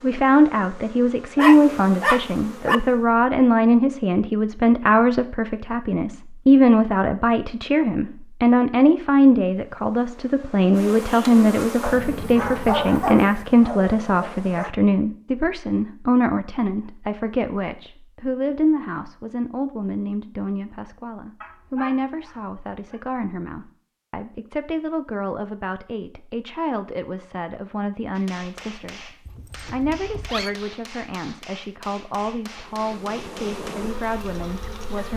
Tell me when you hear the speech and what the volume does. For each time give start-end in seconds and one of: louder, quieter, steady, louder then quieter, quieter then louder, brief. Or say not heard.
0.0-29.1 quieter
29.7-35.1 steady.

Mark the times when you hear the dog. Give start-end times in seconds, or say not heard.
1.4-2.8, 11.8-14.7, 21.4-23.0, 29.2-30.6.